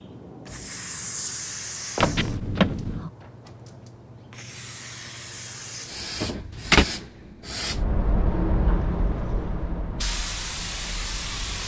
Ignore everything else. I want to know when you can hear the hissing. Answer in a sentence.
You can hear the hissing from 0.0 to 11.6 s.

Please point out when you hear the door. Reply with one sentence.
You can hear the door from 1.9 to 3.1 s and from 6.2 to 6.8 s.